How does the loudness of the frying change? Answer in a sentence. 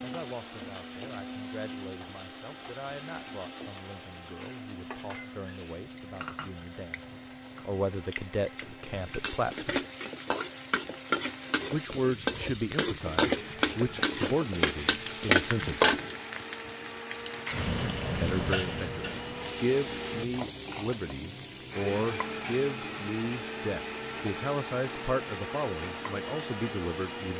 The volume of the frying goes up, then down.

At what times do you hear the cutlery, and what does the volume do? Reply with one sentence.
The cutlery can't be heard in this clip.